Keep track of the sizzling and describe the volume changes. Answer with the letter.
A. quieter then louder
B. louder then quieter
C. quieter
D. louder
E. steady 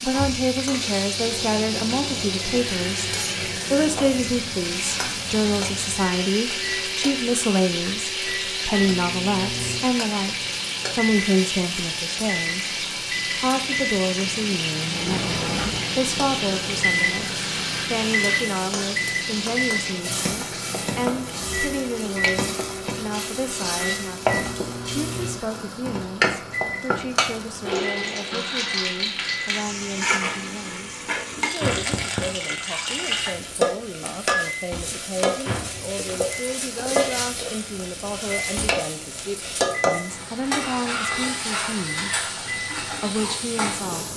E.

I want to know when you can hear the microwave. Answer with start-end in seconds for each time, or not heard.
0.0-44.1.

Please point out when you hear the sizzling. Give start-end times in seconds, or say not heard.
0.0-44.1.